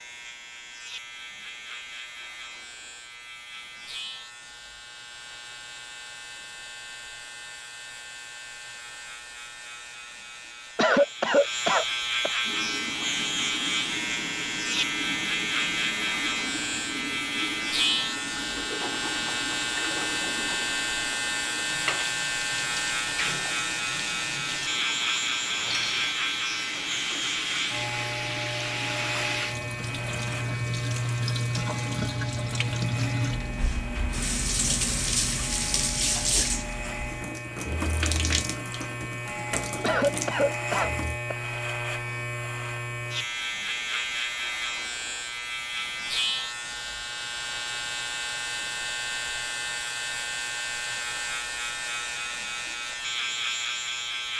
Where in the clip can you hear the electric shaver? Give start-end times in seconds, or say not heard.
0.0-54.3.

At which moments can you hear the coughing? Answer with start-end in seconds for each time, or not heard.
10.8-12.3, 39.8-41.4.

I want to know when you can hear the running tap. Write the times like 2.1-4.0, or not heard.
12.4-41.2.